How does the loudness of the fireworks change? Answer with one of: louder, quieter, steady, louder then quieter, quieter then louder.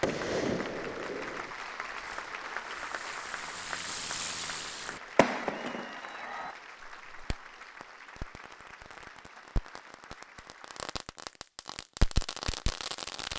quieter then louder.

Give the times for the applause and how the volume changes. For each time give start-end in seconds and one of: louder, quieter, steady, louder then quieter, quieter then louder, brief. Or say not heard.
0.0-10.9 quieter.